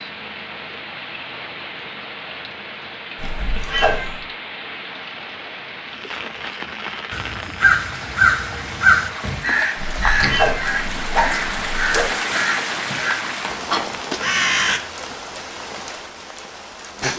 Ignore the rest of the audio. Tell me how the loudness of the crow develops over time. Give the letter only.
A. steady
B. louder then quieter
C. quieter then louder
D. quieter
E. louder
D.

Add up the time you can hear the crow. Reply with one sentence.
The crow can be heard for 8 seconds in total.